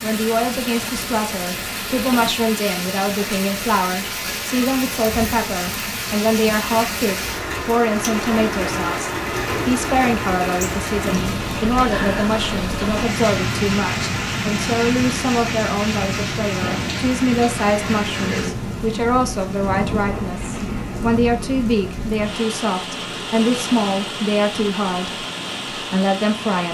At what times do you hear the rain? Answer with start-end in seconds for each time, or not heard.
0.0-26.7.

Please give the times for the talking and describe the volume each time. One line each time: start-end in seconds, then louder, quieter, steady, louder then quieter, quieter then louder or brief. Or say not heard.
0.0-26.7 steady.